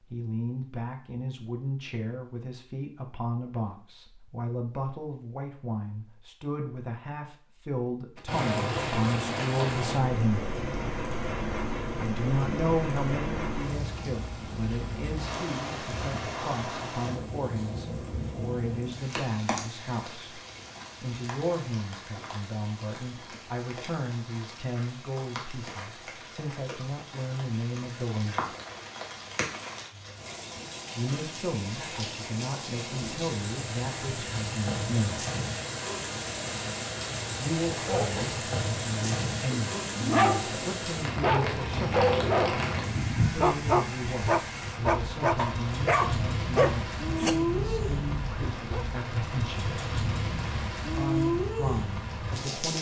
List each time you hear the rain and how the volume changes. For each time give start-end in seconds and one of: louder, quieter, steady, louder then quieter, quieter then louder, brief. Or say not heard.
8.2-52.7 quieter then louder.